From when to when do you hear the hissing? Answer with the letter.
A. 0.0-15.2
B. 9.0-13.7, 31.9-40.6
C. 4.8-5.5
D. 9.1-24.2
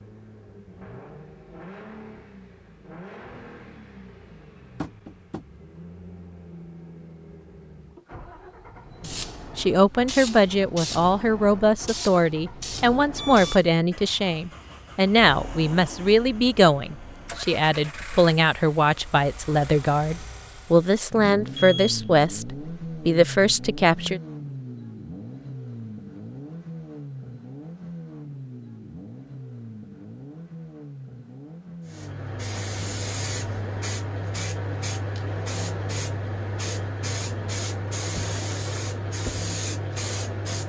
B.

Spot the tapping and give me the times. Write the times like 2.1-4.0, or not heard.
4.8-5.5.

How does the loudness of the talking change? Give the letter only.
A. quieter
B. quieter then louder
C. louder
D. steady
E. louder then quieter
D.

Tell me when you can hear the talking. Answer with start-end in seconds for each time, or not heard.
9.1-24.2.